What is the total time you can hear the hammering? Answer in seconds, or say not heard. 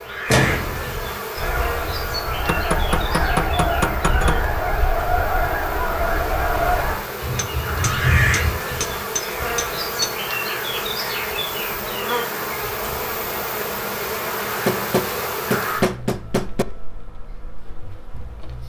7 s.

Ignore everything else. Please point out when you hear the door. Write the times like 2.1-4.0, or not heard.
0.2-1.0.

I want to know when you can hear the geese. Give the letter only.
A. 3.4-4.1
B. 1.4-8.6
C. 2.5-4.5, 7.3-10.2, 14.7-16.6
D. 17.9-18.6
B.